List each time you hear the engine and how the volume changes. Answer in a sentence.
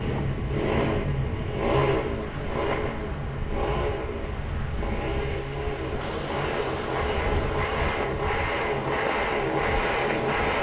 The engine can be heard from 0.0 to 10.5 s, getting quieter then louder.